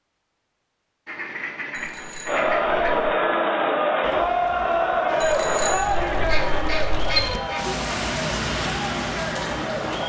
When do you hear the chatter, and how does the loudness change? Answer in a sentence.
You can hear the chatter from 2.2 to 10.0 s, getting quieter.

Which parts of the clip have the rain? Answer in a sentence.
The rain can be heard from 4.0 to 10.0 s.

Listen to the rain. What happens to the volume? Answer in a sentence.
The loudness of the rain goes up.